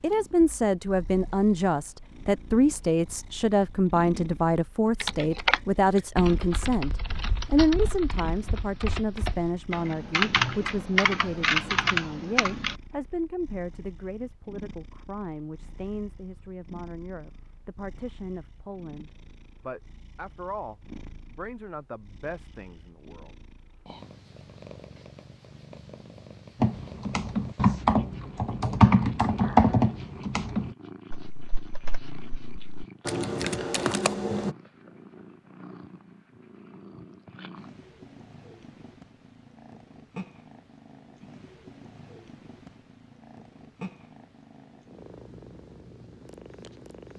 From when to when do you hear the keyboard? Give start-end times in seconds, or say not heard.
5.0-12.8, 26.6-34.5.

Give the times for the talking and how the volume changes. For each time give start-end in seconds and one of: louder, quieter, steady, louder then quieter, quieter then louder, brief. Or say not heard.
0.0-23.4 quieter.